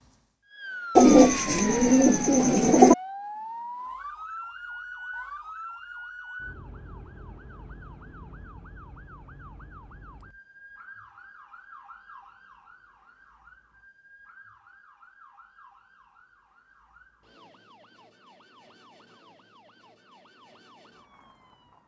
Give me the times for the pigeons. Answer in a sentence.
The pigeons can be heard from 0.9 to 3.0 s.